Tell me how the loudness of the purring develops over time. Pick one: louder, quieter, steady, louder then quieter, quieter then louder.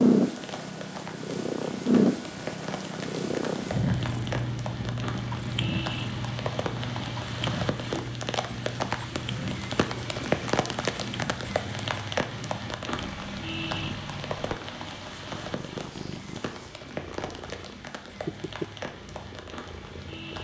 quieter.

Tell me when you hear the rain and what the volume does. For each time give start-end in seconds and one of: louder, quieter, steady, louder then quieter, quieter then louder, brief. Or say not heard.
0.2-20.3 louder then quieter.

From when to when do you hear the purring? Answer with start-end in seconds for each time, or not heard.
0.0-20.3.